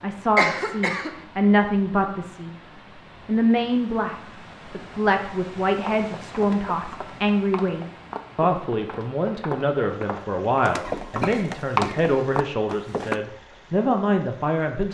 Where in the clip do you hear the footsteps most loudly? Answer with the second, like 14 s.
12 s.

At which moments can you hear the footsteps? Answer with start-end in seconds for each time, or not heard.
5.8-13.2.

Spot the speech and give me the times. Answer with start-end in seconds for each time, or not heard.
0.0-2.5, 3.2-14.9.